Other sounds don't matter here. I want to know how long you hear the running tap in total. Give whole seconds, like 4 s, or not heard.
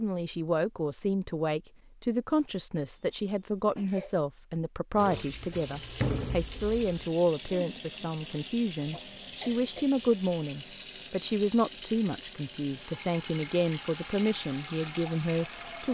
11 s.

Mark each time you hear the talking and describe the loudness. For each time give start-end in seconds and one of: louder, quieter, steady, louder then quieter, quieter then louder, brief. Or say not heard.
0.0-15.9 steady.